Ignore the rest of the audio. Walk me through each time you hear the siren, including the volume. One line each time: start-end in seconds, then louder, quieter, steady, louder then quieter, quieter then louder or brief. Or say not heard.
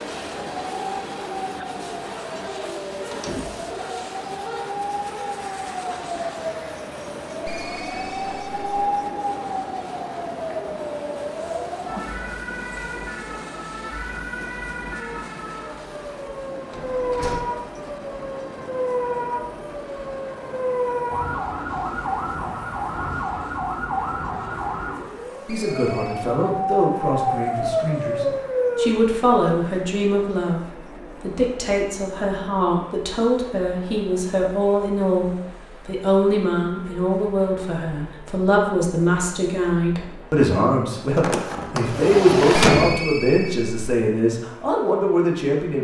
0.2-28.9 louder.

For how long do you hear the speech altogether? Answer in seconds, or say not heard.
20 s.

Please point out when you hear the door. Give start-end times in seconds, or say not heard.
3.1-3.8, 16.7-17.4, 41.1-43.0.